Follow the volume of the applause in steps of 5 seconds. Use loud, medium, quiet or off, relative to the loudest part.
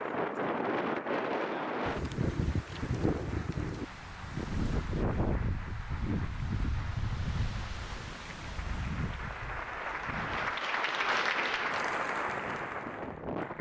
quiet, medium, loud.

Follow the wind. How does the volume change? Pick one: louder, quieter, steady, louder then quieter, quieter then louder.
quieter.